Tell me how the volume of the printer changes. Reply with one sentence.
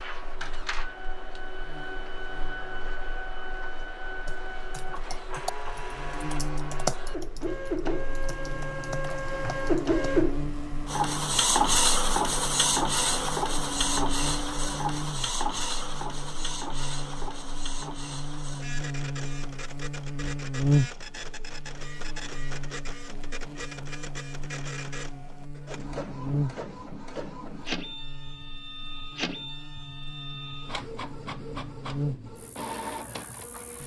The volume of the printer goes up, then down.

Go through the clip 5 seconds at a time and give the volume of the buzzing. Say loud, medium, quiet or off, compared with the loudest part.
quiet, medium, medium, medium, loud, medium, medium.